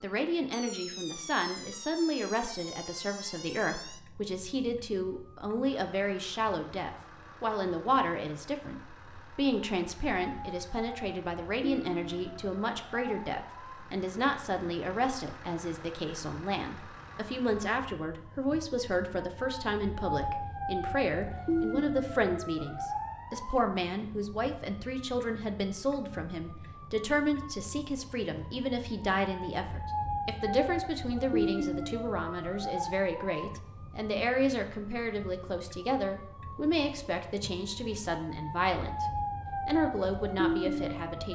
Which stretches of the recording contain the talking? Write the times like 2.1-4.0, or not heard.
0.0-39.0, 39.6-41.3.